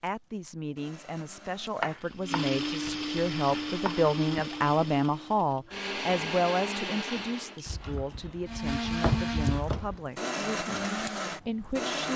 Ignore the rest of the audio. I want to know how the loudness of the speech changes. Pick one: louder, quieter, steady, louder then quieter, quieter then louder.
louder then quieter.